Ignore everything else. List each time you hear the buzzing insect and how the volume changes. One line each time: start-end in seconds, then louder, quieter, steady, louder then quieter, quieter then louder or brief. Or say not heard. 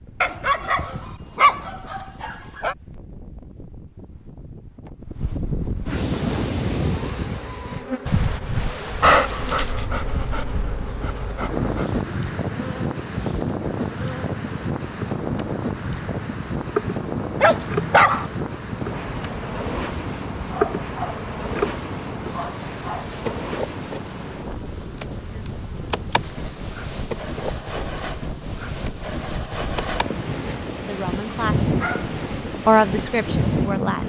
6.2-34.0 louder then quieter.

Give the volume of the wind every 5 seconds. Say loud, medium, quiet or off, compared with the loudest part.
quiet, loud, loud, loud, medium, medium, loud.